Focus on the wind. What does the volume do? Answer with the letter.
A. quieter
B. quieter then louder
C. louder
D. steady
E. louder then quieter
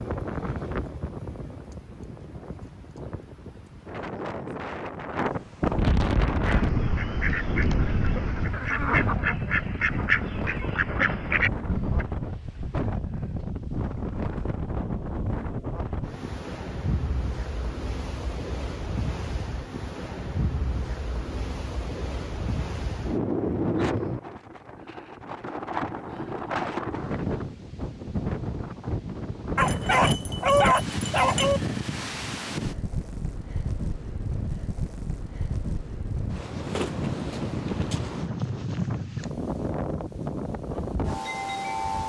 D.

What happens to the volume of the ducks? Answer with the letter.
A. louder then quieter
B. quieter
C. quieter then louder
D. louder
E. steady
D.